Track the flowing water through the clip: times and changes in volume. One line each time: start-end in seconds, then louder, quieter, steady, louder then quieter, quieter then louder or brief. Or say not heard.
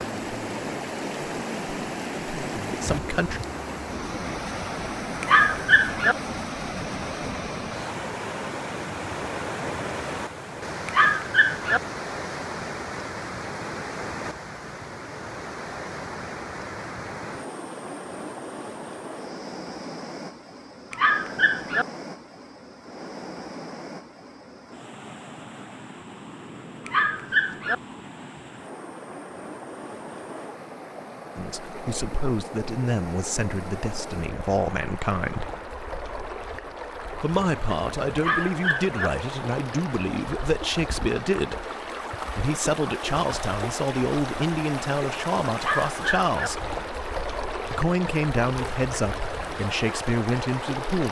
0.0-51.0 quieter then louder.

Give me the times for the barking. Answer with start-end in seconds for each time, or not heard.
5.2-6.2, 10.8-11.8, 20.9-21.9, 26.9-27.8, 38.1-39.1, 45.5-46.5.